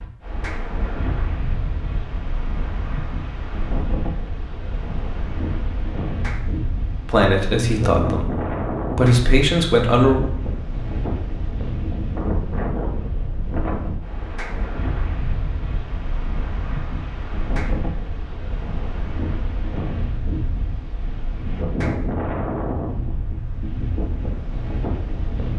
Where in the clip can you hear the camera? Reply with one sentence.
The camera can't be heard in this clip.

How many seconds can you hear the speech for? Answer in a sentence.
The speech can be heard for 3 seconds in total.